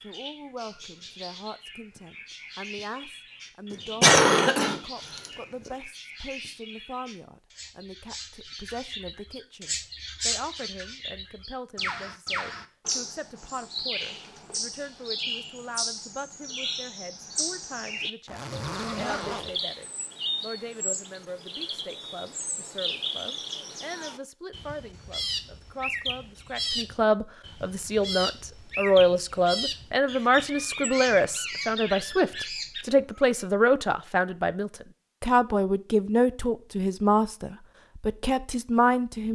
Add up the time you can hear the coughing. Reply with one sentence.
The coughing can be heard for 2 seconds in total.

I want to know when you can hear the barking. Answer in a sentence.
You can't hear the barking here.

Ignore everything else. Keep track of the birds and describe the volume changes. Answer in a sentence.
The loudness of the birds goes up.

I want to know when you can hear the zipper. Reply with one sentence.
The zipper can be heard from 18.2 to 19.6 s.